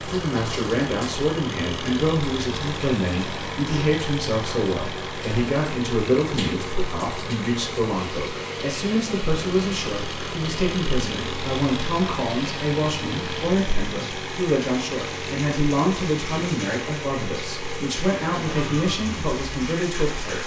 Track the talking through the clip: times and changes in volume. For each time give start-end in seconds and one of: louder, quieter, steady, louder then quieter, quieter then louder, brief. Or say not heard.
0.0-20.4 steady.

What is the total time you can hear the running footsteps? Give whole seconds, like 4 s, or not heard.
not heard.